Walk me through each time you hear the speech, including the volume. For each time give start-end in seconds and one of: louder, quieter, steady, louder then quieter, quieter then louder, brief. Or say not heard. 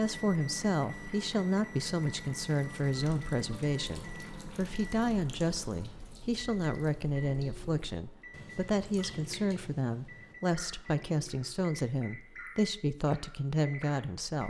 0.0-14.4 steady.